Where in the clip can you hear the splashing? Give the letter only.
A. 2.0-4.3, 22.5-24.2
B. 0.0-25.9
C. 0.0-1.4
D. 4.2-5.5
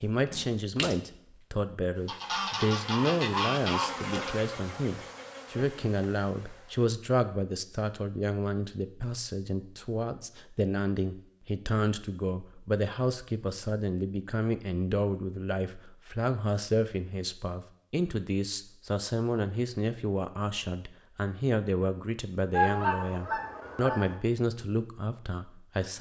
C.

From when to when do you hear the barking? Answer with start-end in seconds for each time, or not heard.
not heard.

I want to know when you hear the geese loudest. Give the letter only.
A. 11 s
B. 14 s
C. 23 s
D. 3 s
C.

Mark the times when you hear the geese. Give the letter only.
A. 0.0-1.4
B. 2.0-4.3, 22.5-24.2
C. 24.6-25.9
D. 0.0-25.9
B.